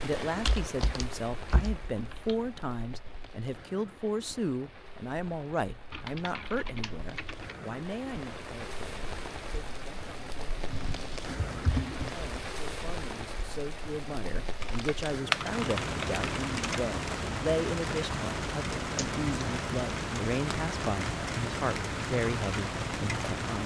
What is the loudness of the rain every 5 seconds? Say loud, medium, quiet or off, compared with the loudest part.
medium, medium, medium, loud, loud.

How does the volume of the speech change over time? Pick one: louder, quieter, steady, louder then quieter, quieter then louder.
quieter then louder.